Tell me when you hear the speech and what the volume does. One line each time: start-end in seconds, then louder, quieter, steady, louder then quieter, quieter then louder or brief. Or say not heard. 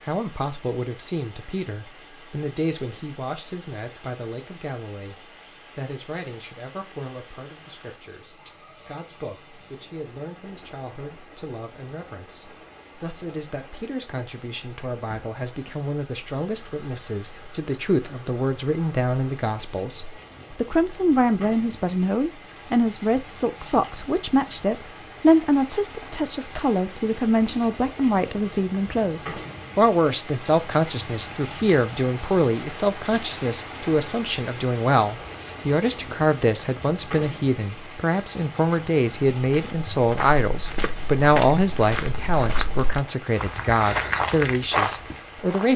0.0-45.7 louder.